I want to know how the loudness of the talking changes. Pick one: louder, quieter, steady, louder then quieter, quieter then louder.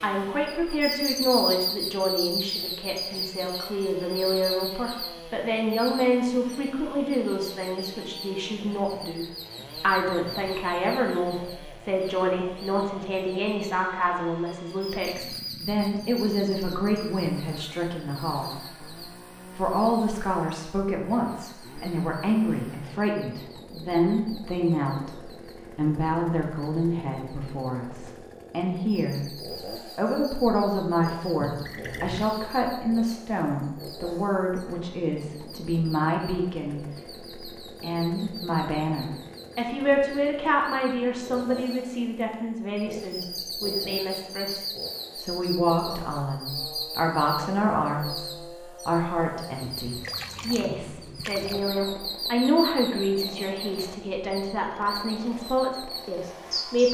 steady.